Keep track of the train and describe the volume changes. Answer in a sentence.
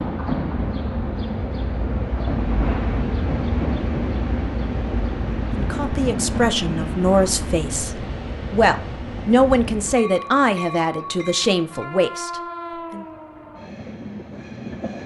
The loudness of the train goes down.